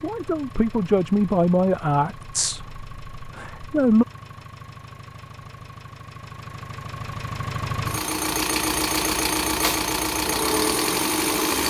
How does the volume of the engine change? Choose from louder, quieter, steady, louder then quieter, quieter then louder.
louder.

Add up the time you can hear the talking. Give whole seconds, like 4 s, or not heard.
4 s.